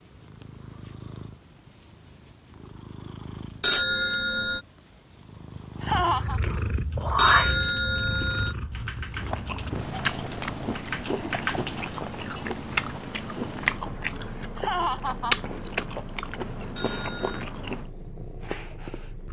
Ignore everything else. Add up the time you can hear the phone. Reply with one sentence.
You can hear the phone for 3 seconds altogether.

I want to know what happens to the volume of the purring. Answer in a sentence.
The loudness of the purring goes up, then down.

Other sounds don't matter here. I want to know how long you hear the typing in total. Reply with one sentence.
The typing can be heard for 5 seconds in total.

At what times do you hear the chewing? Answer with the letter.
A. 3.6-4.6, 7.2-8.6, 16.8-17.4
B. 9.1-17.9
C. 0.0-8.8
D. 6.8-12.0
B.